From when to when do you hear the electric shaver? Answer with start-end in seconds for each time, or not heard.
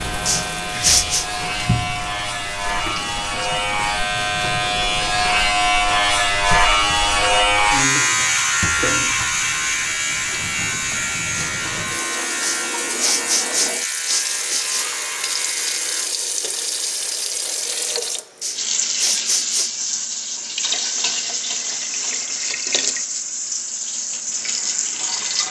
0.0-16.1.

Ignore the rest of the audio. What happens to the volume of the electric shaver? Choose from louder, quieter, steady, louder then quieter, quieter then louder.
louder then quieter.